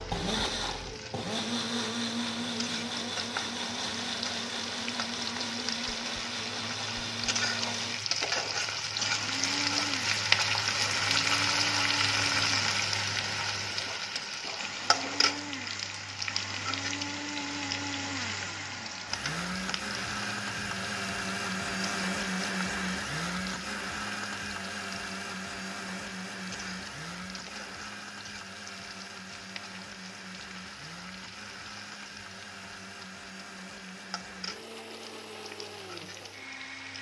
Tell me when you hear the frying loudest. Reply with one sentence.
The volume of the frying peaks at 11 seconds.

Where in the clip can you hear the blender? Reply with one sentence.
You can hear the blender from 0.0 to 36.9 s.